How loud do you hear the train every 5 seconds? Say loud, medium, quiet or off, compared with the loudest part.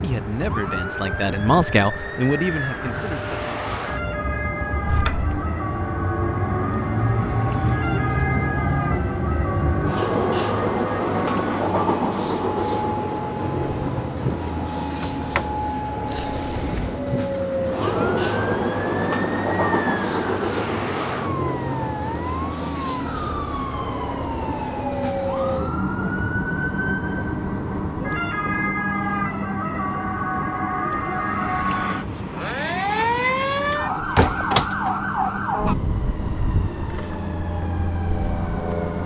medium, loud, loud, loud, loud, loud, medium, medium.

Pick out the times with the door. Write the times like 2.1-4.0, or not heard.
4.8-5.3, 14.8-17.0, 33.7-35.0.